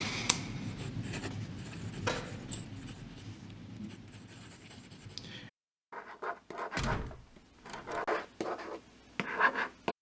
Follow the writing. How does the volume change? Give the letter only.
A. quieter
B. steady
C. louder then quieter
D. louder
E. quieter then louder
E.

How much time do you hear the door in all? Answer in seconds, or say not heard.
2 s.